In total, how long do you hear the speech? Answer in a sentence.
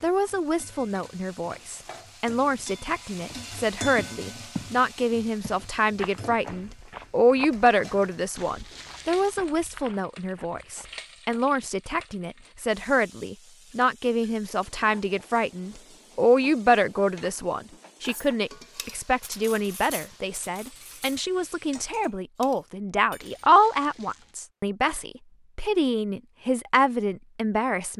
The speech can be heard for 28 seconds in total.